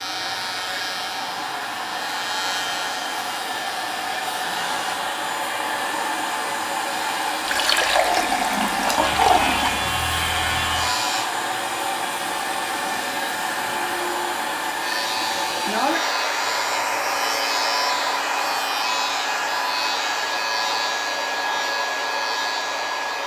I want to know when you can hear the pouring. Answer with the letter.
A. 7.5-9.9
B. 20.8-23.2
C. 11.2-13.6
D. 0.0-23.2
A.